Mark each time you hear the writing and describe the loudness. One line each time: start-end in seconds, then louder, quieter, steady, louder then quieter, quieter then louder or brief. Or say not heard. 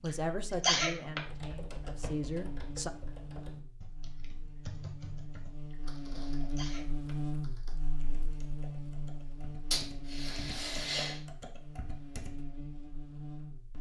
not heard.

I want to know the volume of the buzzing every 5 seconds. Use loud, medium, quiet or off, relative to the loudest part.
medium, loud, medium.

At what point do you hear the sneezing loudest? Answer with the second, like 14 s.
1 s.